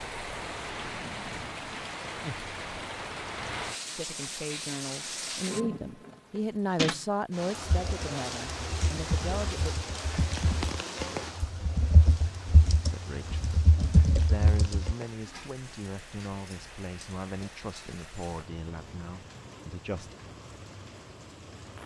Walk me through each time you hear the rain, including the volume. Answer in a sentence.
The rain can be heard from 0.0 to 21.8 s, getting quieter.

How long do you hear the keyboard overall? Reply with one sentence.
The keyboard can be heard for 7 seconds in total.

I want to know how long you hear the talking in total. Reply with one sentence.
The talking can be heard for 13 seconds in total.